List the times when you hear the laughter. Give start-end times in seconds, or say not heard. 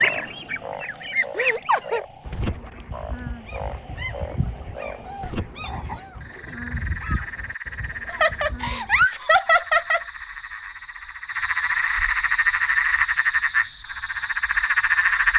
1.4-2.0, 8.1-10.0.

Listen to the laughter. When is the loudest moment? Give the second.
9 s.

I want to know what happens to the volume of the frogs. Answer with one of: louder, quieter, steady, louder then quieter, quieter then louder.
louder.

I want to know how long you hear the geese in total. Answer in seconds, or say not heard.
9 s.